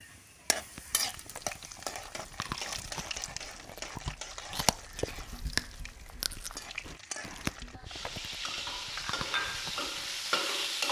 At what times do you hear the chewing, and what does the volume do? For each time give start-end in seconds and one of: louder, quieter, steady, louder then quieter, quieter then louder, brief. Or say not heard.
0.6-10.2 louder then quieter.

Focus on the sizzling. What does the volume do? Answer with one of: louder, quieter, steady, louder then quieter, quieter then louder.
quieter then louder.